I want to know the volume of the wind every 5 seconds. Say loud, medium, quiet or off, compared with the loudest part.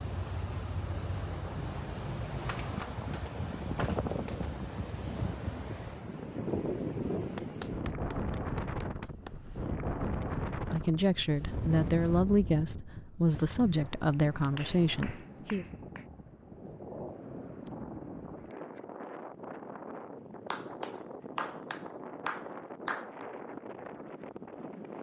loud, loud, loud, medium, medium.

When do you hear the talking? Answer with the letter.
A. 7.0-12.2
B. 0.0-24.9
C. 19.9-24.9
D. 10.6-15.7
D.